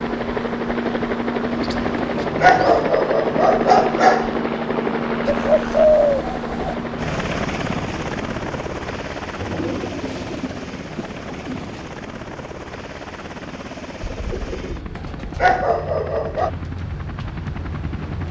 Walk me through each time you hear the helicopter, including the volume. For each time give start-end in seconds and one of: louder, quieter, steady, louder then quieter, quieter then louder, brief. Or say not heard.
0.0-18.2 quieter.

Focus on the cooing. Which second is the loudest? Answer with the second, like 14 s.
6 s.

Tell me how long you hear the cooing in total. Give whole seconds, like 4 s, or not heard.
7 s.